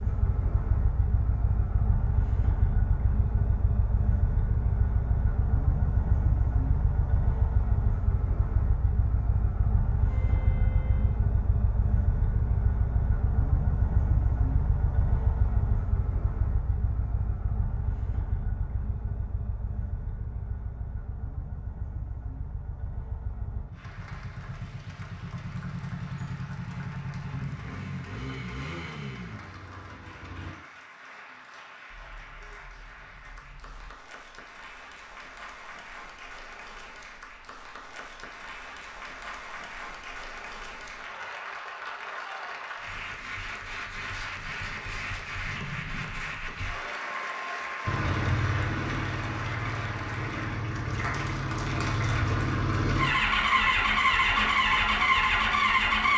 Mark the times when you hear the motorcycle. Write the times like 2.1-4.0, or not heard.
0.0-30.6, 47.9-56.1.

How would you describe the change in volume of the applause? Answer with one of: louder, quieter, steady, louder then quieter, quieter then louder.
louder.